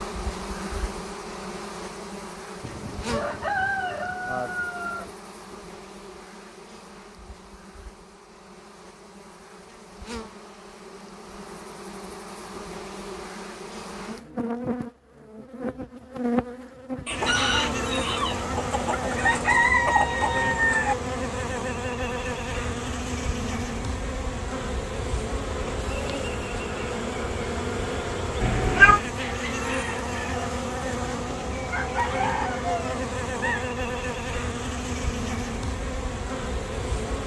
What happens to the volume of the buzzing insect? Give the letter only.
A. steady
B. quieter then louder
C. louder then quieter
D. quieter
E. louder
E.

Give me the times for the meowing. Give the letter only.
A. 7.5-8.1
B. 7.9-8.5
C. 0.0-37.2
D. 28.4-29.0
D.